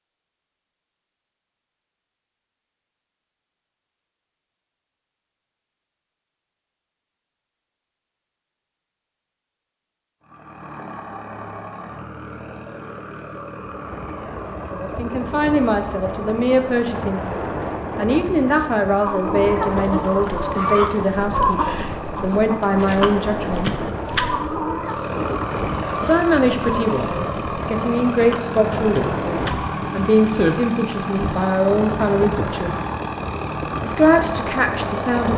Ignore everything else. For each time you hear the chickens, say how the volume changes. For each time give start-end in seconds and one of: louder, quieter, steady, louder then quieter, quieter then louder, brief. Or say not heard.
19.1-29.9 quieter.